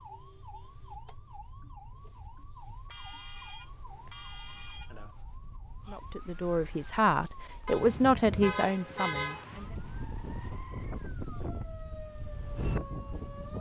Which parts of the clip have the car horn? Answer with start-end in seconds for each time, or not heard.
2.9-5.2, 7.7-9.4.